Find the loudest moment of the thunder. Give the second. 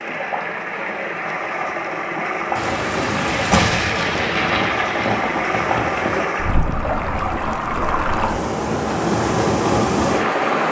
4 s.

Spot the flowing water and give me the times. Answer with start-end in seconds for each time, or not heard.
0.0-10.6.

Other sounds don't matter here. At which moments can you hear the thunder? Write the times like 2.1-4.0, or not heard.
2.5-6.2.